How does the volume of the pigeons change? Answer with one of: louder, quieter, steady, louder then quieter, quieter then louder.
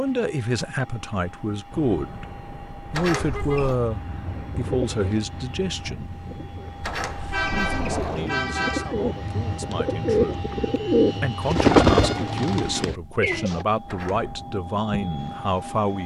quieter then louder.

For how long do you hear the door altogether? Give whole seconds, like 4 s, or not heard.
3 s.